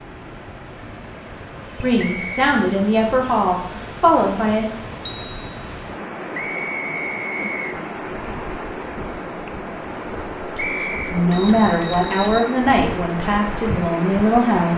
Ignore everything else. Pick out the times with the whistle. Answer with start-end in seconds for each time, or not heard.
1.9-2.4, 6.3-7.8, 10.6-11.2.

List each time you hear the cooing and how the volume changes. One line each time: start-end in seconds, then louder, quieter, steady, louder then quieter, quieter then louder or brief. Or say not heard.
not heard.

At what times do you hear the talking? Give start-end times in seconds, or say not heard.
1.8-4.7, 10.6-14.7.